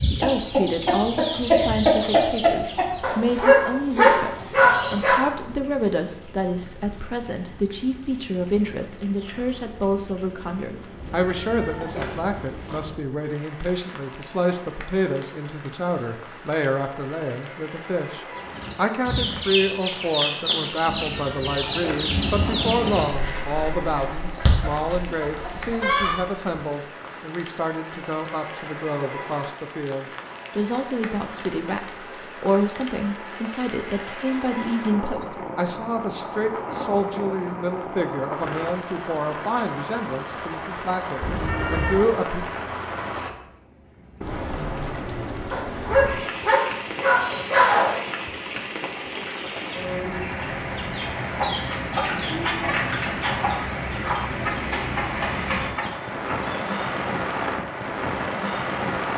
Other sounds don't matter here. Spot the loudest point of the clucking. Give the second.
2 s.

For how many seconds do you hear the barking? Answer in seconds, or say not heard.
5 s.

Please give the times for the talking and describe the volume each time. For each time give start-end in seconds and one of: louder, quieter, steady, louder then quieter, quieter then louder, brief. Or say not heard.
0.1-42.4 steady.